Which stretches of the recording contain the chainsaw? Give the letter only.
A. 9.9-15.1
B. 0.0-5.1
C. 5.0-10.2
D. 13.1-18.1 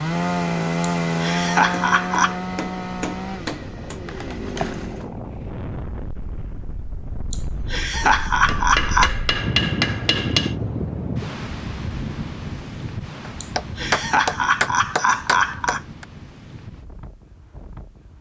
B.